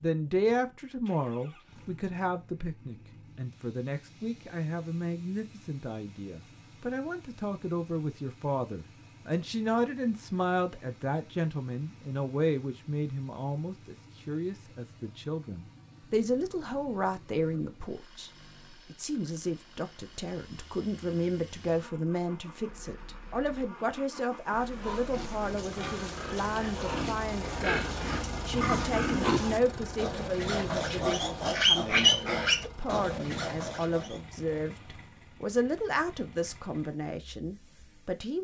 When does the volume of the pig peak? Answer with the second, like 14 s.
32 s.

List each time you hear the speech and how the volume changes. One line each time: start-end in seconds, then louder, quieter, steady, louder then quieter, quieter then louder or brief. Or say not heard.
0.0-38.3 steady.